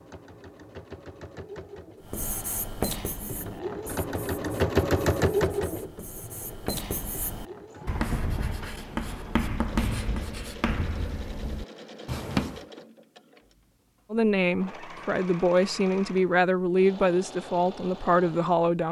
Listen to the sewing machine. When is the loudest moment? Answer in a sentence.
The volume of the sewing machine peaks at 5 seconds.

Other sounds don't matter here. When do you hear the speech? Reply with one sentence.
You can hear the speech from 14.1 to 18.8 s.